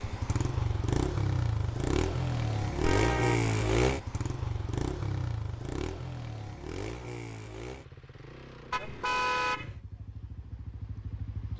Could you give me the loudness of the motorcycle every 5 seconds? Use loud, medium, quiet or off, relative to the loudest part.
loud, medium, quiet.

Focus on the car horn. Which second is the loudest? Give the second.
9 s.